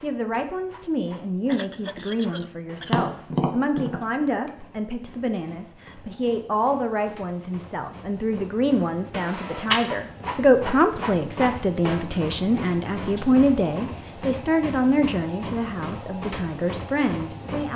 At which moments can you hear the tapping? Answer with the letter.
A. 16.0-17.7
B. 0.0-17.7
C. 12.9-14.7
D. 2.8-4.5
D.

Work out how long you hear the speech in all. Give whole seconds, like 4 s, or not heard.
18 s.